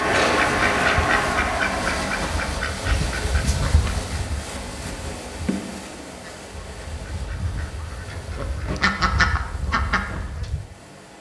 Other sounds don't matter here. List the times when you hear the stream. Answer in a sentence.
The stream can be heard from 0.0 to 11.1 s.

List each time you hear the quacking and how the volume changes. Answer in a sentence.
The quacking can be heard from 0.1 to 10.6 s, getting quieter then louder.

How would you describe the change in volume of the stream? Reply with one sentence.
The loudness of the stream goes down.